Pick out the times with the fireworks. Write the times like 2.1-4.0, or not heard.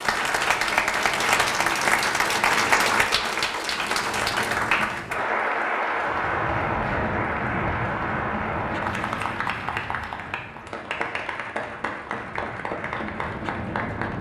not heard.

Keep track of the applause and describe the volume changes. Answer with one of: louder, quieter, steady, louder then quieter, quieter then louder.
quieter.